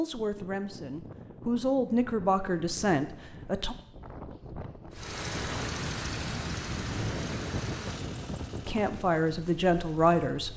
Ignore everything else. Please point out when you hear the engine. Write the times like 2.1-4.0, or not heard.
4.9-10.5.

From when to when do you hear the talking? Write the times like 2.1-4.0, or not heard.
0.0-3.8, 8.7-10.5.